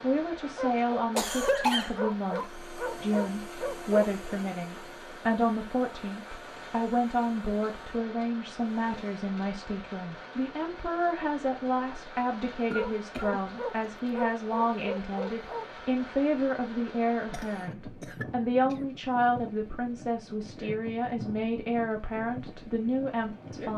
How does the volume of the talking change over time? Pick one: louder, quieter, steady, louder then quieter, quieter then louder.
steady.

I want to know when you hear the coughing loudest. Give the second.
2 s.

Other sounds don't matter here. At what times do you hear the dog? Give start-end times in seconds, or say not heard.
0.6-4.3, 12.8-15.7.